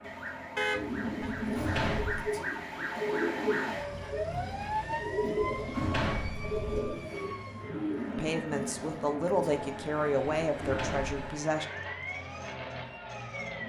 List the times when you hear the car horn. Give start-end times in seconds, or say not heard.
0.6-1.3.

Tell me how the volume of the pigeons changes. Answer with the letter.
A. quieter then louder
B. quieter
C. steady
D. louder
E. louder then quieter
C.